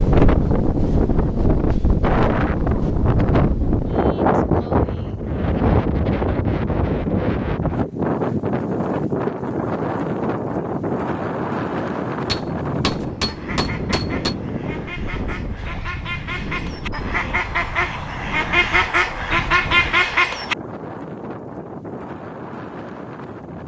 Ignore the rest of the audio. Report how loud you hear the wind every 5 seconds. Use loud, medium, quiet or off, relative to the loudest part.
loud, loud, medium, quiet, quiet.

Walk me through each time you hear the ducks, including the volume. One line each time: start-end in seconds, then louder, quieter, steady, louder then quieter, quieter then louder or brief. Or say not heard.
12.9-20.6 louder.